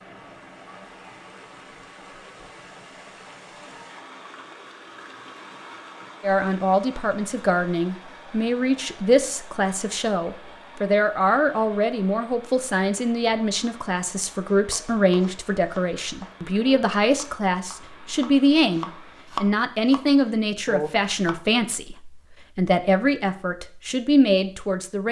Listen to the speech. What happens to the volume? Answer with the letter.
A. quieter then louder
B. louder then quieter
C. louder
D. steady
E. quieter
D.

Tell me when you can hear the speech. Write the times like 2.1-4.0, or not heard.
6.2-25.0.